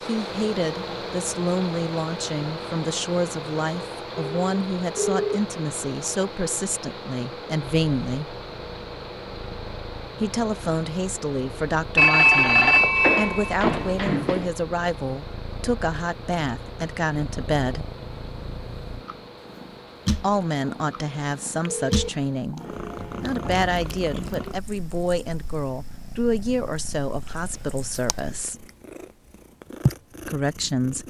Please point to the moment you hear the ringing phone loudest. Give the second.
12 s.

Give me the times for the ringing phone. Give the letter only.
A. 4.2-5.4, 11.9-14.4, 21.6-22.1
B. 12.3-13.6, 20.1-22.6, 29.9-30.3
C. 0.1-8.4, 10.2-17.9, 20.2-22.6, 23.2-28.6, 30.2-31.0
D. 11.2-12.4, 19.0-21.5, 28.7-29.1
A.